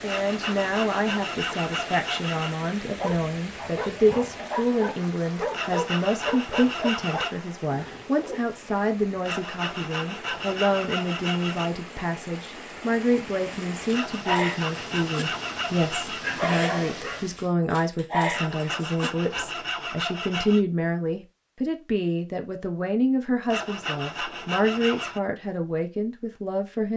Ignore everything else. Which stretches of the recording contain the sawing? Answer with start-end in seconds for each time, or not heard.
0.1-2.5, 5.5-7.3, 9.2-11.7, 13.9-16.4, 18.3-20.6, 23.4-25.2.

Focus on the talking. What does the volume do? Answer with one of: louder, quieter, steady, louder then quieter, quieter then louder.
steady.